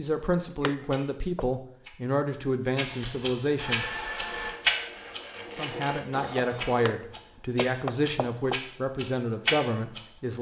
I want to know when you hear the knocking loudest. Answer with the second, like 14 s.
8 s.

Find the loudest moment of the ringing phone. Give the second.
4 s.